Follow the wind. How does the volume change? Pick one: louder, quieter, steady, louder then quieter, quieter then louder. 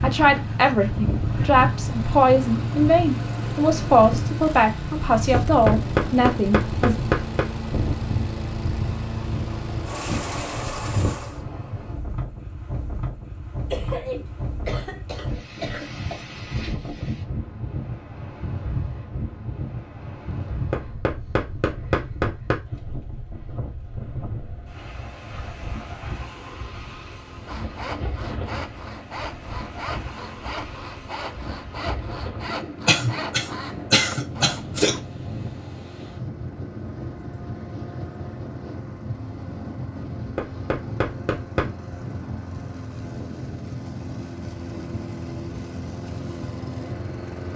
quieter.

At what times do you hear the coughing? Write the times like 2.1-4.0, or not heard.
13.7-16.2, 32.9-35.0.